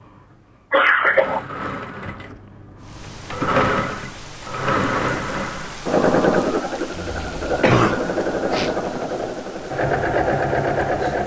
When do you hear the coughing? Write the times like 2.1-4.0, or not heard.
0.7-1.4, 7.0-8.8.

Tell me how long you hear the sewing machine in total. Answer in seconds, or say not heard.
11 s.